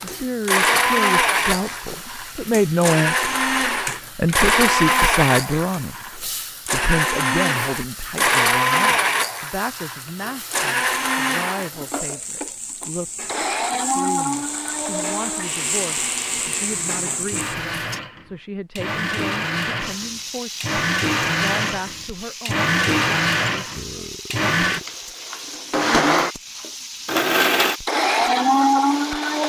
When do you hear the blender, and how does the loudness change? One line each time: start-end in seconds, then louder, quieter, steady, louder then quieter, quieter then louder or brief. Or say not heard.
0.0-29.4 quieter then louder.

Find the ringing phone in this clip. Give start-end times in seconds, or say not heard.
not heard.